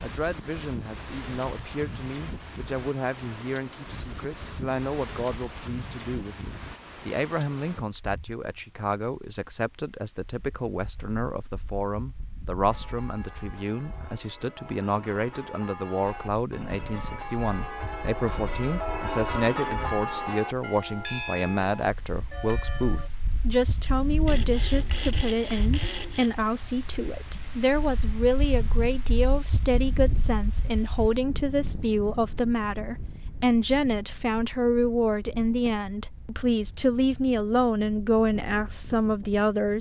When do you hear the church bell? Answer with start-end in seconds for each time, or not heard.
12.7-23.1.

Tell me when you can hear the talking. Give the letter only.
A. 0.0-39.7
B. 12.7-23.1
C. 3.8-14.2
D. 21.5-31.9
A.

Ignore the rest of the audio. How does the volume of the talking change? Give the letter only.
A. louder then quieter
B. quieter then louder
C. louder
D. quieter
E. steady
C.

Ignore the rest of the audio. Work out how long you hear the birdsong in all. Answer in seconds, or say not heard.
not heard.